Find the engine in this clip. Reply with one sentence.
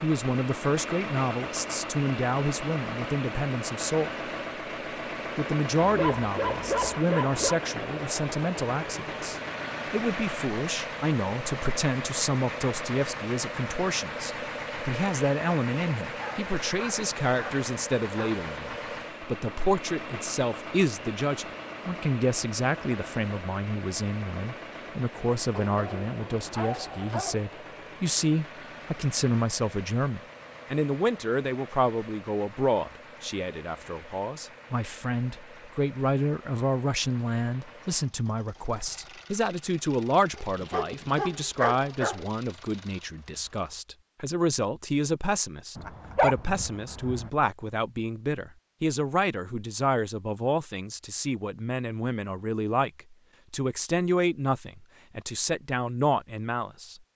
You can hear the engine from 0.0 to 43.8 s.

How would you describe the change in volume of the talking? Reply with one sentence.
The volume of the talking stays about the same.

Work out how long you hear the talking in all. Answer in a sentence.
You can hear the talking for 56 seconds altogether.